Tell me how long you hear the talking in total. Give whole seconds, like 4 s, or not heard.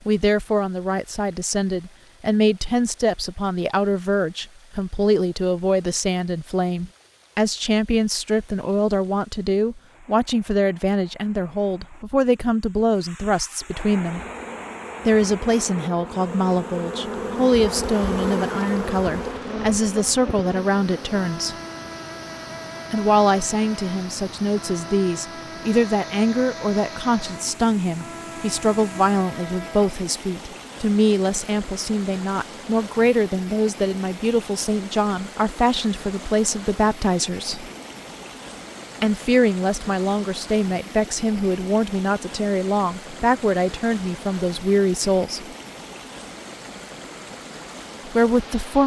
43 s.